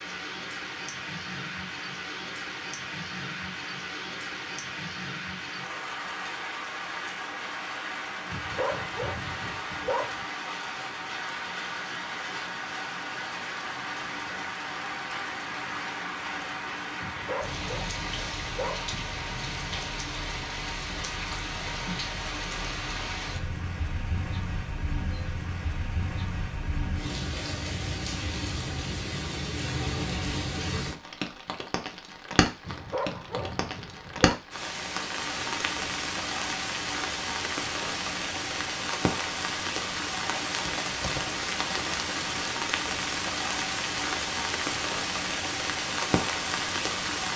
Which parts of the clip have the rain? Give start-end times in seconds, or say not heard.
0.0-47.3.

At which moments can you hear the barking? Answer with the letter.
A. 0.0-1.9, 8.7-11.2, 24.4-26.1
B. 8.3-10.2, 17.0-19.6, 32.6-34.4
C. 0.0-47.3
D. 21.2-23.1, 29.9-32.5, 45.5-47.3
B.